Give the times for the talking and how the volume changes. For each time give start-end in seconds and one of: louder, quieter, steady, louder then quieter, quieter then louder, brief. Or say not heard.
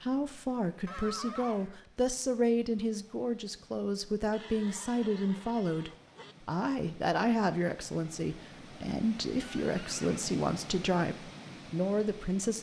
0.0-12.5 steady.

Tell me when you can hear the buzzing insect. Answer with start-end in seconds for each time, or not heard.
not heard.